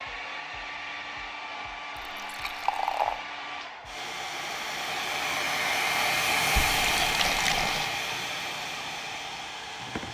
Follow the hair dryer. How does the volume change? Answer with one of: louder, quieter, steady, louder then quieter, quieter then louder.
louder then quieter.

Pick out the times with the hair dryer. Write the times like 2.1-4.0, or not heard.
0.0-10.0.